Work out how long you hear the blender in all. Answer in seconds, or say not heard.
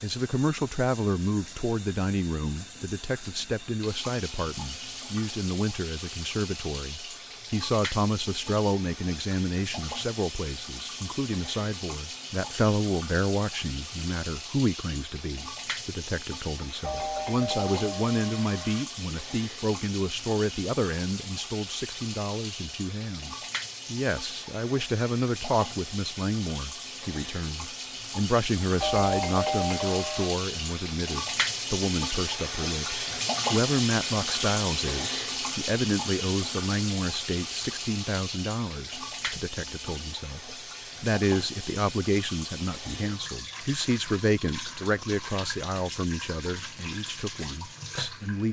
not heard.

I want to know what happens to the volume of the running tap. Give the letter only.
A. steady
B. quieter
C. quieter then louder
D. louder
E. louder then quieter
E.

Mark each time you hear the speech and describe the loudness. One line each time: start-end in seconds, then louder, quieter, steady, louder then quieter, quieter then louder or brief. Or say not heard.
0.0-48.4 steady.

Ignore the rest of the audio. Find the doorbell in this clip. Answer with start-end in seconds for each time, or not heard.
16.8-18.9, 28.8-30.4.